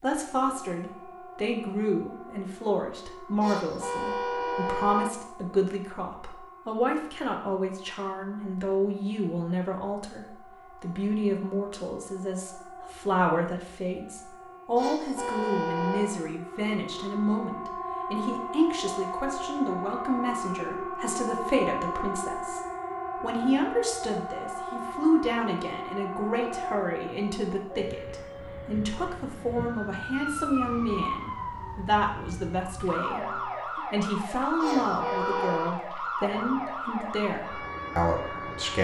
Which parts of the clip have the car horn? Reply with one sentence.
You can hear the car horn from 3.4 to 5.1 s, from 14.8 to 16.2 s and from 34.6 to 35.8 s.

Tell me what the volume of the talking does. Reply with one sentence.
The volume of the talking stays about the same.